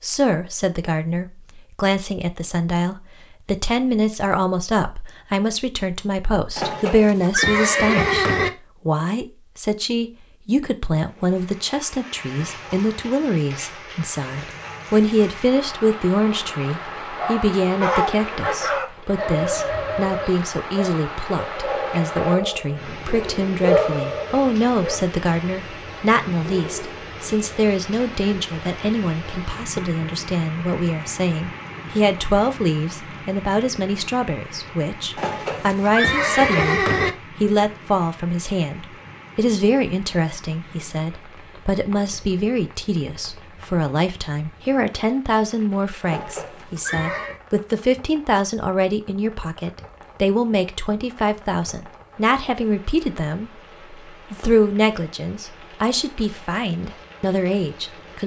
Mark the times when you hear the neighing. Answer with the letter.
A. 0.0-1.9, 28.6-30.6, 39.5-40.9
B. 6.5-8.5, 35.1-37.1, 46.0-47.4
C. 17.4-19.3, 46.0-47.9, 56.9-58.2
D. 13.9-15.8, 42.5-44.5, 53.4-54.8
B.